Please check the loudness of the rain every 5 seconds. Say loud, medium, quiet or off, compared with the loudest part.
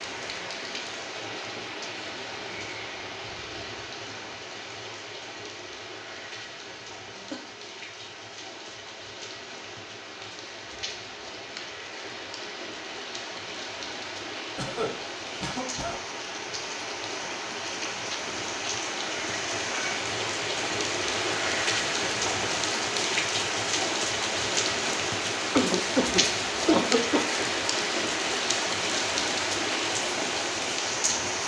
medium, quiet, medium, medium, loud, loud, loud.